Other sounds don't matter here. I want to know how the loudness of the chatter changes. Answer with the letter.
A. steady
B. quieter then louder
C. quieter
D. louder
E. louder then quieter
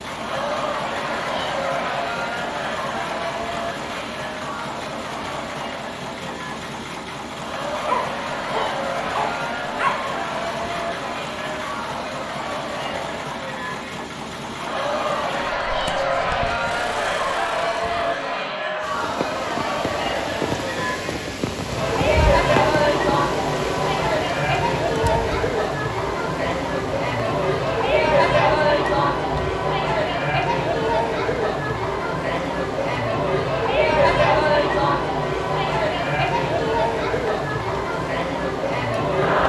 D.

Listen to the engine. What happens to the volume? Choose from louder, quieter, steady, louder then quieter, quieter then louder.
steady.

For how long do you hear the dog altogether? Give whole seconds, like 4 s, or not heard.
2 s.